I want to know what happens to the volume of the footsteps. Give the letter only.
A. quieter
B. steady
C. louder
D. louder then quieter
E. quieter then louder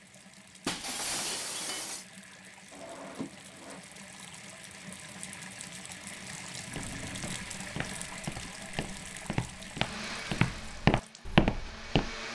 C.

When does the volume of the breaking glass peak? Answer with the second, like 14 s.
1 s.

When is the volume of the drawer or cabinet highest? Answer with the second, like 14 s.
3 s.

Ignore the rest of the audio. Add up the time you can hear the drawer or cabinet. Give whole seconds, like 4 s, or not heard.
2 s.